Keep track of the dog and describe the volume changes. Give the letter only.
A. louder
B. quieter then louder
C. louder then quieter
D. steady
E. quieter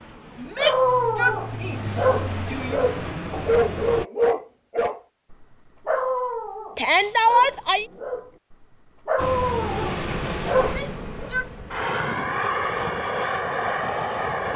B.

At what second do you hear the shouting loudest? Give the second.
7 s.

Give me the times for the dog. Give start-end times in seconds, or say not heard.
0.6-11.3.